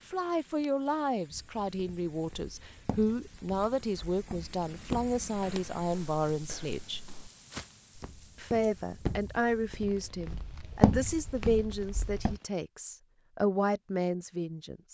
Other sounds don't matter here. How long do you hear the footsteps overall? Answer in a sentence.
The footsteps can be heard for 11 seconds in total.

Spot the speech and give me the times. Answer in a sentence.
The speech can be heard from 0.1 to 7.0 s and from 8.3 to 14.8 s.